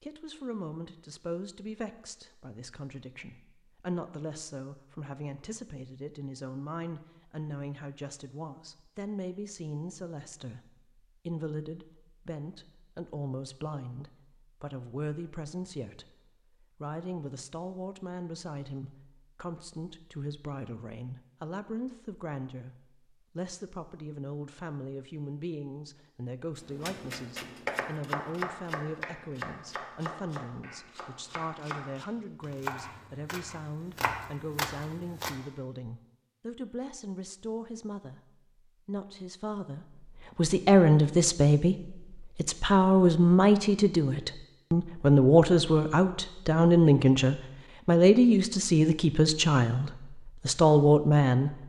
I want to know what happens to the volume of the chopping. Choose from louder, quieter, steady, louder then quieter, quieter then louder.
quieter then louder.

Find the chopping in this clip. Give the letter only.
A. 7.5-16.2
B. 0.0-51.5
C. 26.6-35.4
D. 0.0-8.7
C.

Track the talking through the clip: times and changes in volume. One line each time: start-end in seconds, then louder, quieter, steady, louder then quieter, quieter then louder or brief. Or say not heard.
0.0-51.5 louder.